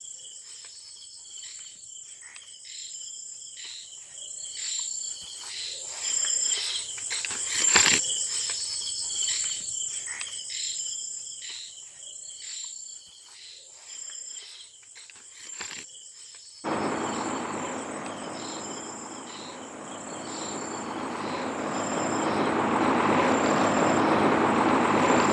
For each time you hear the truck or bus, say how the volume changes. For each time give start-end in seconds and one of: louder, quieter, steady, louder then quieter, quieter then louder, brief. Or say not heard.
16.6-25.2 quieter then louder.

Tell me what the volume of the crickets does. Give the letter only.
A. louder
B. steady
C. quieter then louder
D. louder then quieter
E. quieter
D.